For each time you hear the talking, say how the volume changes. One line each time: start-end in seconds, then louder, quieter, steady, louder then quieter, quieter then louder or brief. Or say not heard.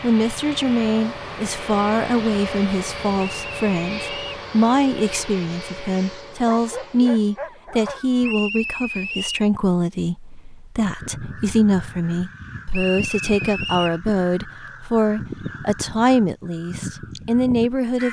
0.0-18.0 steady.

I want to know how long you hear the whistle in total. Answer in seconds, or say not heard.
4 s.